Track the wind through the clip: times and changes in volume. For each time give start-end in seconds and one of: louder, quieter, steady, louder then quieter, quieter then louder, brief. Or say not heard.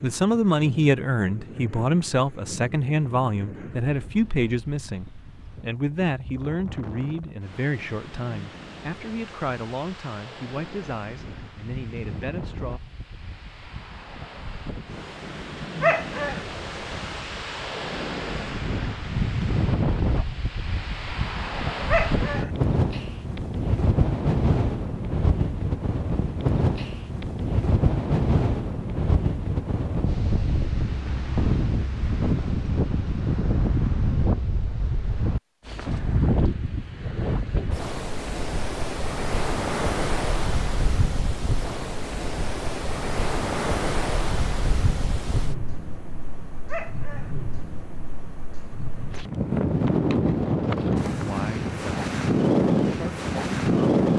0.0-54.1 louder.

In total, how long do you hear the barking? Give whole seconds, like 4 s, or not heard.
2 s.